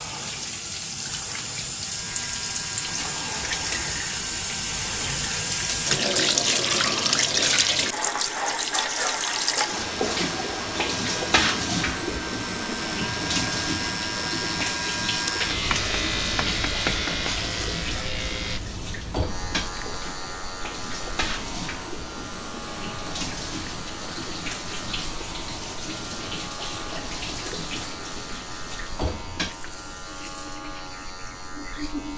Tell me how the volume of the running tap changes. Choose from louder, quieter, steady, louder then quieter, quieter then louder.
quieter.